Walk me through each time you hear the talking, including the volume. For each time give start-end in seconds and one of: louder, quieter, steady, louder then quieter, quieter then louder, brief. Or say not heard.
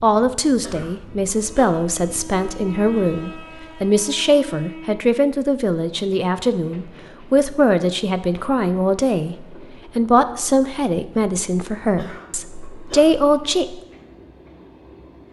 0.0-13.8 steady.